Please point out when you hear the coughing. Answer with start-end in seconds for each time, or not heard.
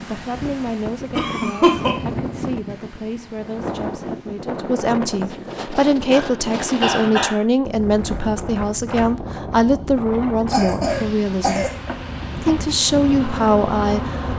1.1-1.9, 6.1-7.4, 10.4-11.7.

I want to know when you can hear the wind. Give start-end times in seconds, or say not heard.
0.0-14.3.